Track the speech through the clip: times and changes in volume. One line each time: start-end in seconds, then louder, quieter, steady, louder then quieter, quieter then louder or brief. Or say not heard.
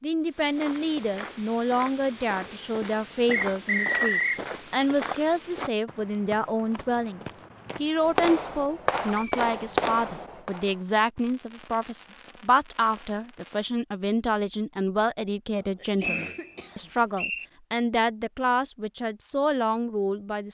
0.0-20.5 steady.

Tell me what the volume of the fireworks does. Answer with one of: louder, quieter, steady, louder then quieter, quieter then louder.
quieter.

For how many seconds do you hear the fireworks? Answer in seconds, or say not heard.
6 s.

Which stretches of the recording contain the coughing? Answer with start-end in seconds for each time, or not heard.
15.8-17.0.